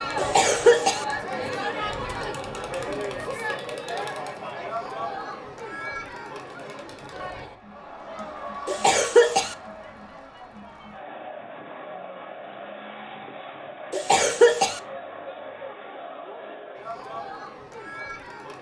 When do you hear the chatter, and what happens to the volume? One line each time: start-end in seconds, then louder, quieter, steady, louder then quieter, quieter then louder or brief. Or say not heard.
0.0-18.5 quieter.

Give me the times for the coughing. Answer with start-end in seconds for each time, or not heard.
0.1-1.1, 8.7-9.6, 13.9-14.8.